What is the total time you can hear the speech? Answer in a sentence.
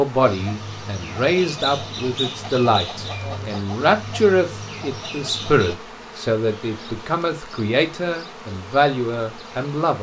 You can hear the speech for 10 seconds altogether.